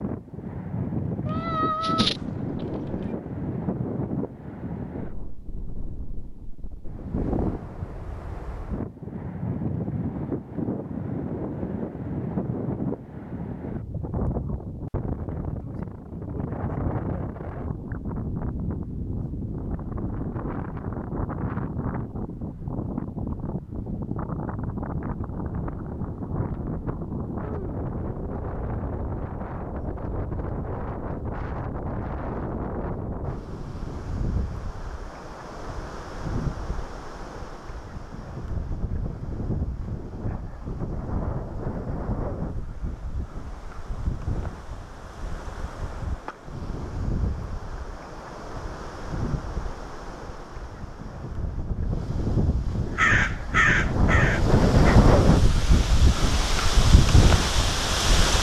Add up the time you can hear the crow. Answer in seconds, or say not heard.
2 s.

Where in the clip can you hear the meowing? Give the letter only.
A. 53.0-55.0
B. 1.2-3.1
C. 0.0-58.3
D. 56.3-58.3
B.